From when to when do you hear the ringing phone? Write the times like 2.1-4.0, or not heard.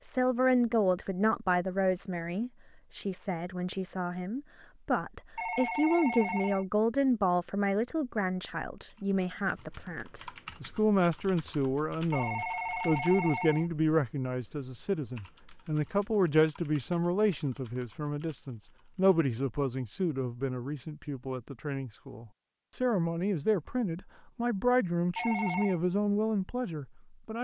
5.3-6.7, 12.1-13.7, 25.1-25.8.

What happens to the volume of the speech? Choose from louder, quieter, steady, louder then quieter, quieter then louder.
steady.